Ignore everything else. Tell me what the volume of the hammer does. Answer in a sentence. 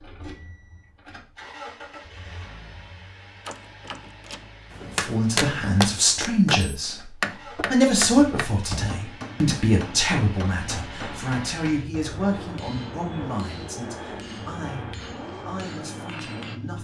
The volume of the hammer goes down.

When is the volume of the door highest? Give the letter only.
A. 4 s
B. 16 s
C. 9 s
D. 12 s
C.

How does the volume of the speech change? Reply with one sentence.
The volume of the speech goes down.